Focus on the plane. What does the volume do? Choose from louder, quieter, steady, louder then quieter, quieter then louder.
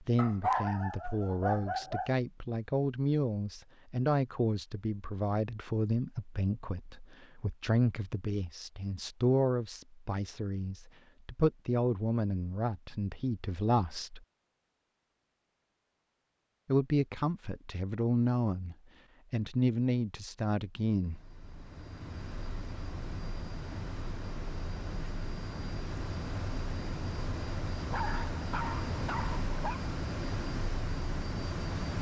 louder.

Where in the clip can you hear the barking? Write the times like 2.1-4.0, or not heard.
0.1-2.1, 27.9-29.9.